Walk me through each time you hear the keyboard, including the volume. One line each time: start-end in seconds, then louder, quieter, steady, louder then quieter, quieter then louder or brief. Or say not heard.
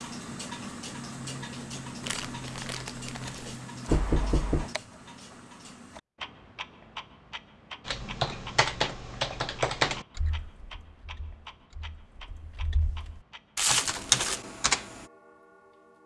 7.8-15.1 quieter then louder.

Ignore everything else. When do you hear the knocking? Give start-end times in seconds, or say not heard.
3.9-4.7.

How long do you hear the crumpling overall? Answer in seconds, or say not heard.
2 s.